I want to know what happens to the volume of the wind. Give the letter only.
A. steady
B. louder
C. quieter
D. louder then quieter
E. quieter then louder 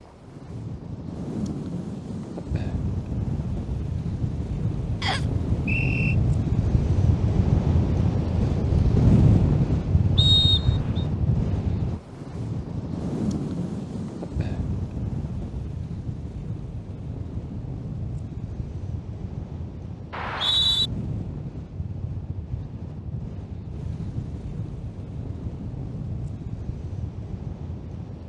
D.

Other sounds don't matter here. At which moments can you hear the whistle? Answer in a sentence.
The whistle can be heard from 5.0 to 6.2 s, from 10.2 to 11.1 s and from 20.1 to 20.9 s.